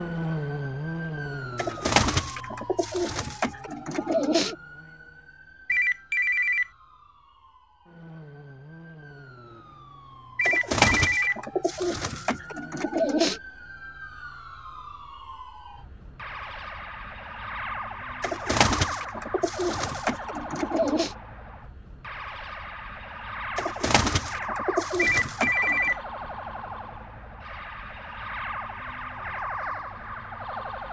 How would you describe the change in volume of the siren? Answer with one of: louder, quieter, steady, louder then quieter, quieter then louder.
quieter then louder.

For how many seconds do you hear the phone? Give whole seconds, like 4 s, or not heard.
3 s.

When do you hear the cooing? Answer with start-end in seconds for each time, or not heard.
1.6-4.5, 10.4-13.4, 18.2-21.1, 23.6-25.9.